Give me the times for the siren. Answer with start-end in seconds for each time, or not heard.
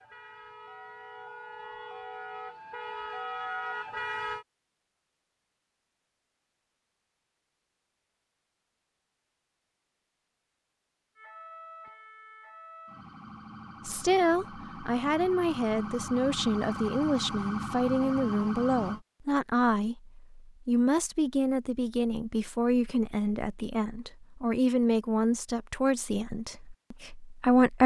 0.0-4.5, 11.2-19.0.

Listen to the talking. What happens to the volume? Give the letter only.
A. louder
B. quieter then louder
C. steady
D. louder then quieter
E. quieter
C.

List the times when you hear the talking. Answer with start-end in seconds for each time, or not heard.
13.8-27.8.